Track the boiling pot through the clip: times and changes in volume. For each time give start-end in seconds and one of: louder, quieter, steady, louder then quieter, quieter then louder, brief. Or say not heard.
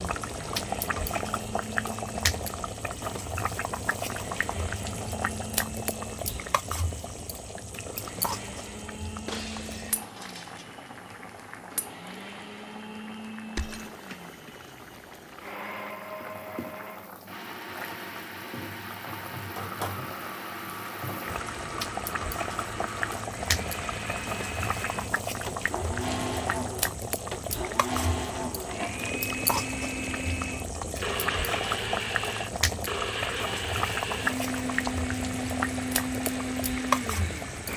0.0-37.7 quieter then louder.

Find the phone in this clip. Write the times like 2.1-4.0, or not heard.
not heard.